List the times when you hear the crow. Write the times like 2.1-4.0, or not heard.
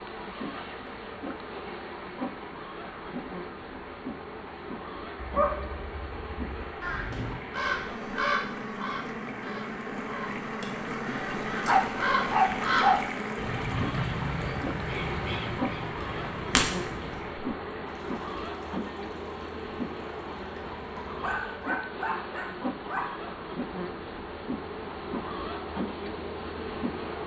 6.8-17.2.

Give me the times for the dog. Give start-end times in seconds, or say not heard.
5.2-6.6, 11.7-13.1, 21.2-23.2.